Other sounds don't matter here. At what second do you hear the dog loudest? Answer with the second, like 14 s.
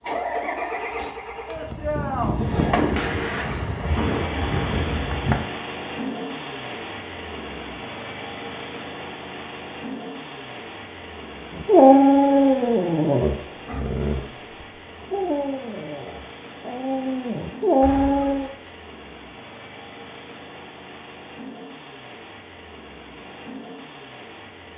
12 s.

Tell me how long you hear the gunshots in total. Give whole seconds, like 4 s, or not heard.
5 s.